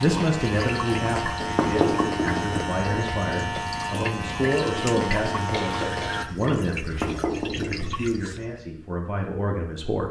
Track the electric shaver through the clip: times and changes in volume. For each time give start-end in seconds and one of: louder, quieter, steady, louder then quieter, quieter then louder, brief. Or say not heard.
0.0-6.2 steady.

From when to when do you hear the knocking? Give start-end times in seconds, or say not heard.
1.1-2.6, 6.8-7.8.